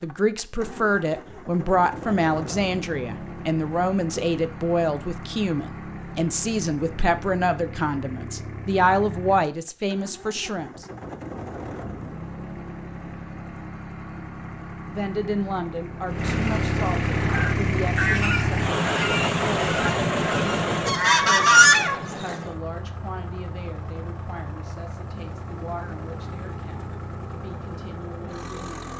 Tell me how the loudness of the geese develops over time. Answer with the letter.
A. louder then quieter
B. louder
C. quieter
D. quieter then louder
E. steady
D.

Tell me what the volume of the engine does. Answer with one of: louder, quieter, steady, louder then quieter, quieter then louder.
louder then quieter.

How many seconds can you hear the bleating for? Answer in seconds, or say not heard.
not heard.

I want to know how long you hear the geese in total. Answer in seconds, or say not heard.
5 s.